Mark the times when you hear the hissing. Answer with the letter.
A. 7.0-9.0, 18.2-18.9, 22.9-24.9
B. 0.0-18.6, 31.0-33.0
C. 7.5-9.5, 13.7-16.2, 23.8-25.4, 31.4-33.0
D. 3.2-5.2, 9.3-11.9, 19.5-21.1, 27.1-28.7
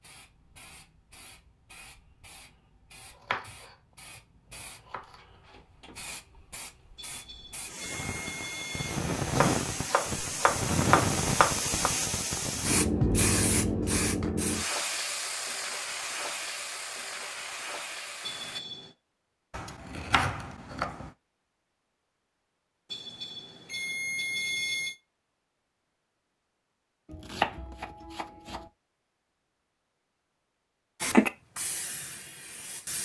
B.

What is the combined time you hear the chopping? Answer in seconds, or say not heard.
8 s.